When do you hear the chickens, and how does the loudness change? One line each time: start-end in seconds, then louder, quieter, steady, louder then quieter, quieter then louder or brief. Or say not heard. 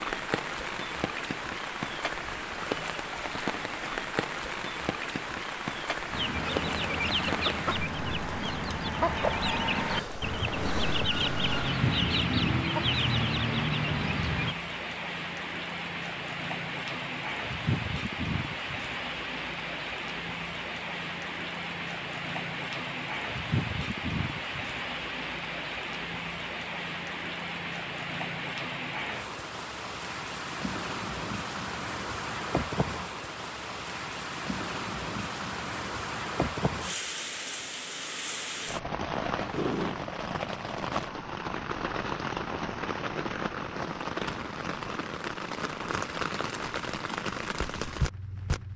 6.1-14.6 steady.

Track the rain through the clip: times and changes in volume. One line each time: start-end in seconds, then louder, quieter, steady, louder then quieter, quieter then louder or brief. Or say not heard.
0.0-48.7 steady.